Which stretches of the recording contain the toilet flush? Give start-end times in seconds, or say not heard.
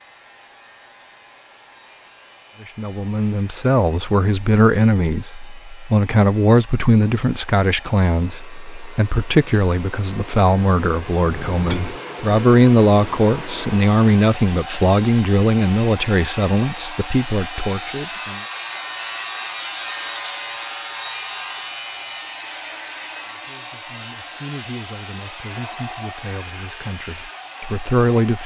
11.2-11.9.